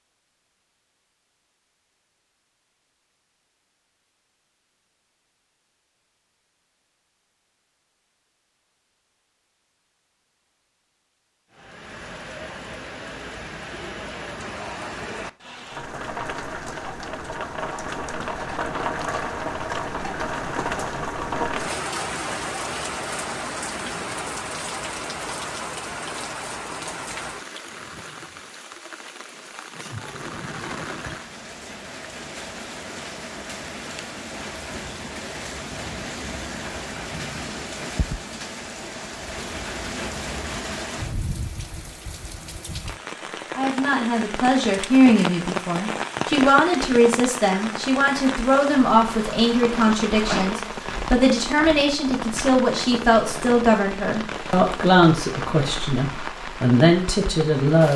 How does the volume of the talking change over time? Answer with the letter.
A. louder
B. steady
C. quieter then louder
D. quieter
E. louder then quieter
B.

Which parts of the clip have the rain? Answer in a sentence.
You can hear the rain from 11.5 to 57.9 s.